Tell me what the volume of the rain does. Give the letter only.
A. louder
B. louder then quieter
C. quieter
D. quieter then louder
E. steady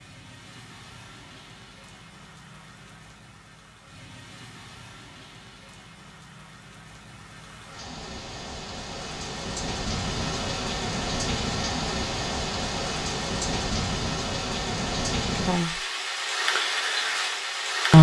A.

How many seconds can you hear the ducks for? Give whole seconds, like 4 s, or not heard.
not heard.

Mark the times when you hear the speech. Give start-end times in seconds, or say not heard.
15.2-15.8.